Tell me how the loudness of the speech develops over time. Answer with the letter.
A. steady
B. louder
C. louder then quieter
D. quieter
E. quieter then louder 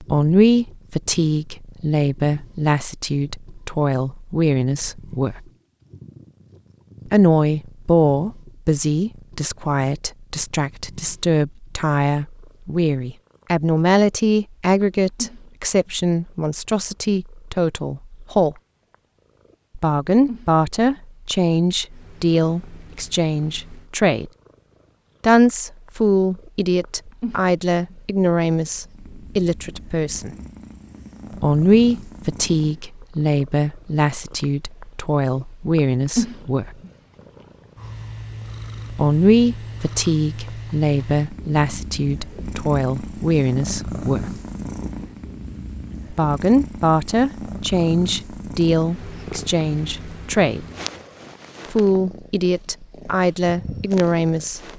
A.